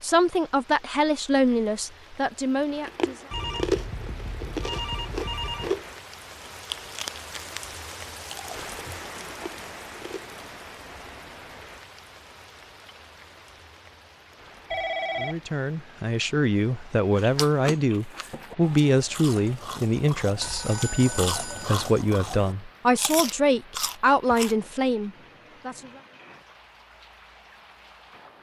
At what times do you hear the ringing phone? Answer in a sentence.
The ringing phone can be heard from 3.3 to 5.8 s, from 14.7 to 15.4 s and from 20.4 to 21.8 s.